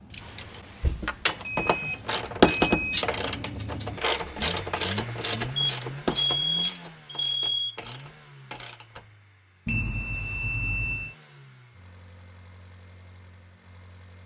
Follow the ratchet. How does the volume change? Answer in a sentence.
The loudness of the ratchet goes up, then down.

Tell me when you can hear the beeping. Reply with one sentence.
You can hear the beeping from 1.4 to 3.0 s, from 5.5 to 7.8 s and from 9.7 to 11.2 s.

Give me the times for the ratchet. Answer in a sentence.
The ratchet can be heard from 0.1 to 9.1 s.